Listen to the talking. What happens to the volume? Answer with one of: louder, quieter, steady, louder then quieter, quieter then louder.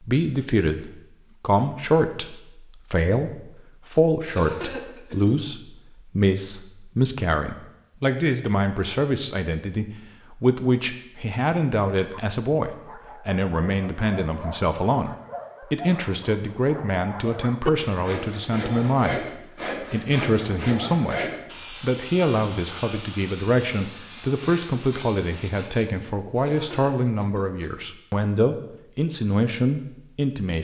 steady.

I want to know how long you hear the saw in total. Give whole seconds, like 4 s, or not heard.
8 s.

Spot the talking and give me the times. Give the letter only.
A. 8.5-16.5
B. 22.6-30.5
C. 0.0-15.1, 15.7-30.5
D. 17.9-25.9
C.